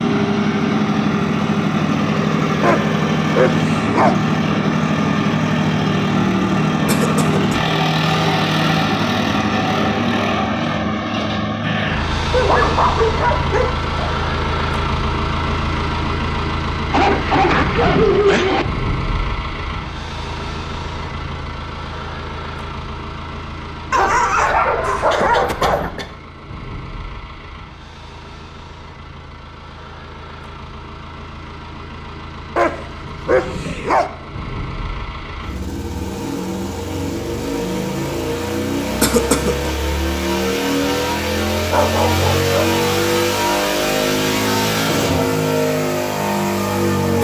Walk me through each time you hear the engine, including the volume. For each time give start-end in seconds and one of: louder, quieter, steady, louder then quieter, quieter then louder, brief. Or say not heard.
0.0-47.1 quieter then louder.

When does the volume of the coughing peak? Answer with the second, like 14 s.
39 s.